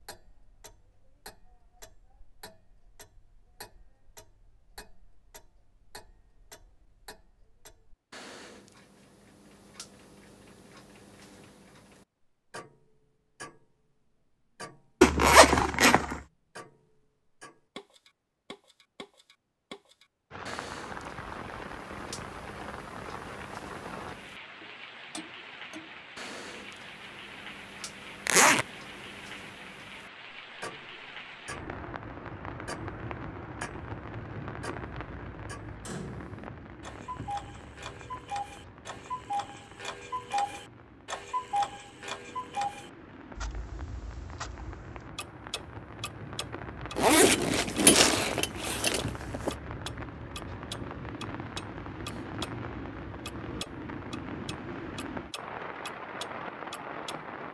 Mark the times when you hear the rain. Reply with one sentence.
You can hear the rain from 20.3 to 57.4 s.